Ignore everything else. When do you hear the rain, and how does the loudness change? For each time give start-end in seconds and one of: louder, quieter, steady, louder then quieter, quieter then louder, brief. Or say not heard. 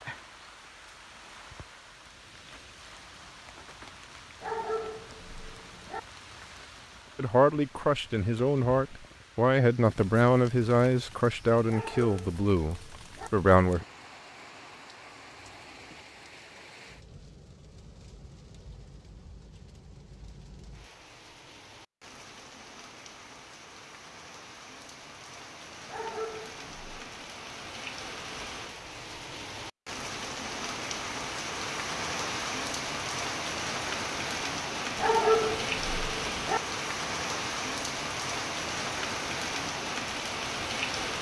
0.0-41.1 louder.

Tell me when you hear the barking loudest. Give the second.
35 s.